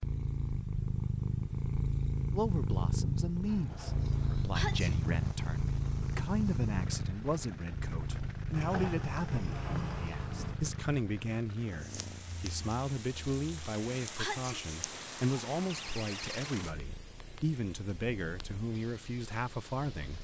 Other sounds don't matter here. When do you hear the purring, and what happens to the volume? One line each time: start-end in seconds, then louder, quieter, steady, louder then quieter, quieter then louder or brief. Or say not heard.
0.0-20.1 quieter.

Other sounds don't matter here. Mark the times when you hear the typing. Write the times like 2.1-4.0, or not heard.
not heard.